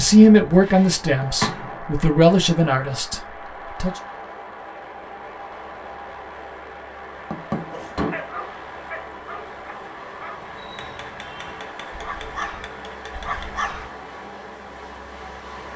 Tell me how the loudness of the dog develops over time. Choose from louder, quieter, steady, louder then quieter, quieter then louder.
quieter then louder.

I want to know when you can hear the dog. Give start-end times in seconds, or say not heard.
7.7-13.9.